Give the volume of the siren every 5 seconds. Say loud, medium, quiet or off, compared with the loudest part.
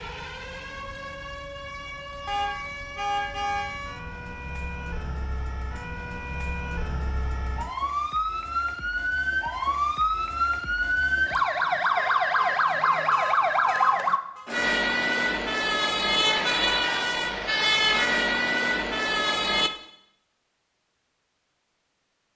quiet, medium, loud, loud, off.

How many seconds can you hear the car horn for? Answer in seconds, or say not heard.
4 s.